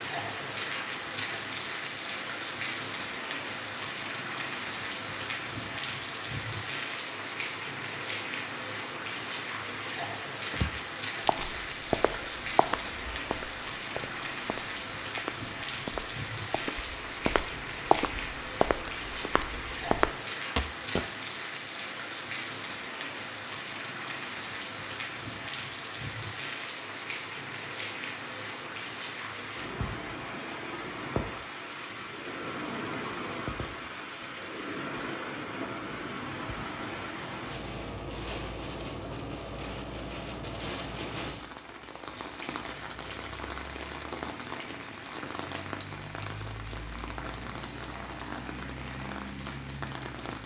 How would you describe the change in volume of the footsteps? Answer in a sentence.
The volume of the footsteps goes down, then up.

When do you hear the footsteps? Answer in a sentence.
You can hear the footsteps from 10.5 to 21.1 s.